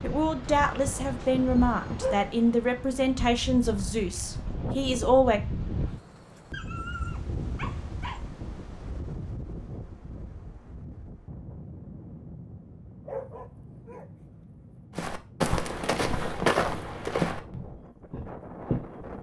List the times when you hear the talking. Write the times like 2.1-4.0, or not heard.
0.0-5.4.